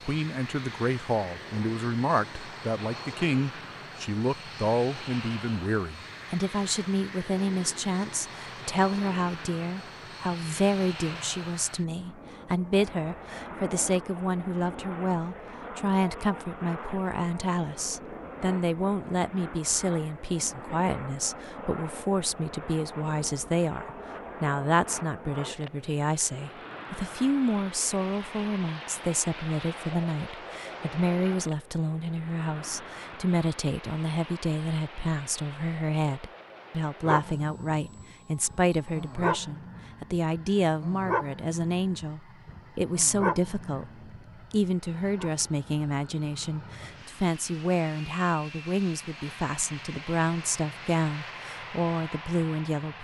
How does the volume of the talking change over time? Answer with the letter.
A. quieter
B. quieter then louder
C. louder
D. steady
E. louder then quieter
D.